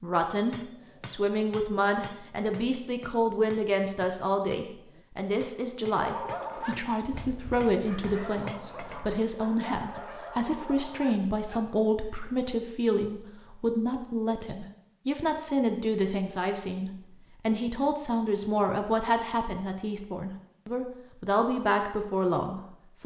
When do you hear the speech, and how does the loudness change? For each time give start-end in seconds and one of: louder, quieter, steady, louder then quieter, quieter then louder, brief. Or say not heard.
0.0-23.0 steady.